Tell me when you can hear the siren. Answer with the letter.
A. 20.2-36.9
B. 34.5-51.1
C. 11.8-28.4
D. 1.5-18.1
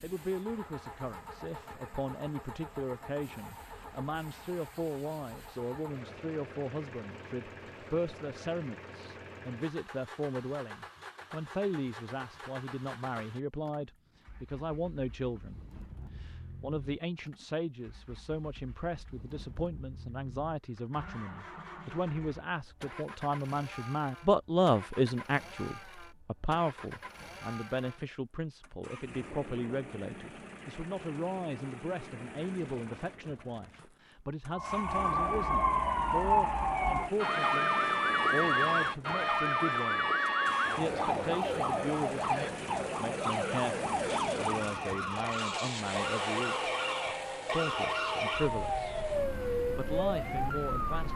B.